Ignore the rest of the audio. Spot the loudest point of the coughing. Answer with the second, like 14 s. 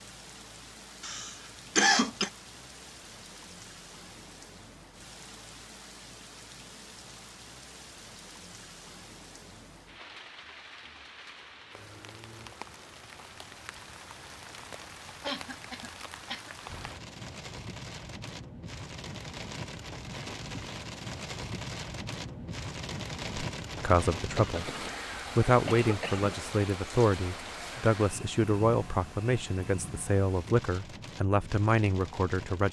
2 s.